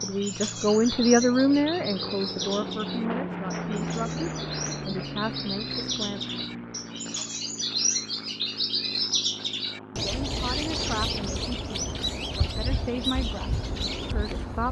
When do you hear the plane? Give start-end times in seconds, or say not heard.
0.0-14.6.